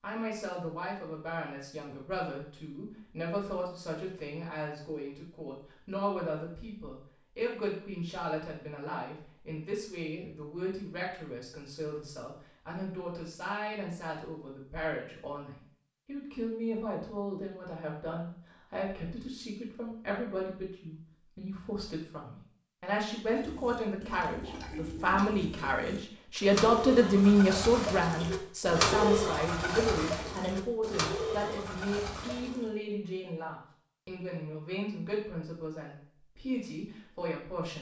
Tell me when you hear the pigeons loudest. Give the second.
29 s.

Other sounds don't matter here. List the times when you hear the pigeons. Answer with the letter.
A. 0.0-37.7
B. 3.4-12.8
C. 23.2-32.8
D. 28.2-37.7
C.